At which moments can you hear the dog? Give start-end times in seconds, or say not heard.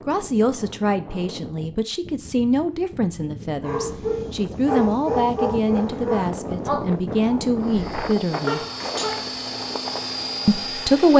3.6-9.3.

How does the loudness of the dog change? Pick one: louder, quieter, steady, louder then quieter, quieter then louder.
quieter then louder.